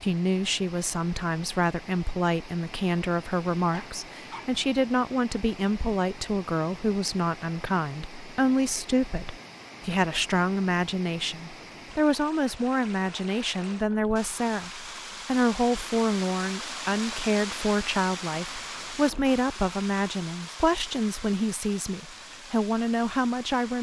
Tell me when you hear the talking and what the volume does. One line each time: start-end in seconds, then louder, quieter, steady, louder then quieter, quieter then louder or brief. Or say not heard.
0.0-23.7 steady.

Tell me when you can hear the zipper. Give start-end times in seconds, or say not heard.
not heard.